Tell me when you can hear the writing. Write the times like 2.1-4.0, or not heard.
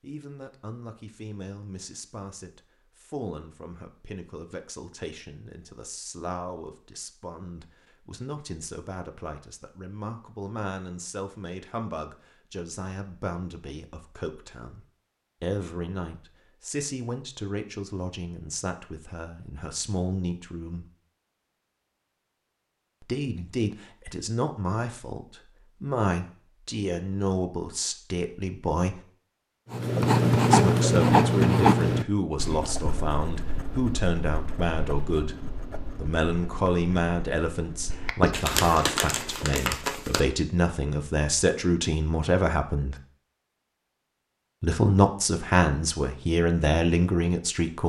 29.7-39.5.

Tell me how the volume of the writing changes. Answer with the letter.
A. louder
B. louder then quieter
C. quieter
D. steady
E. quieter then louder
E.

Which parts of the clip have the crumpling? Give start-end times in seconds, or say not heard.
38.3-40.2.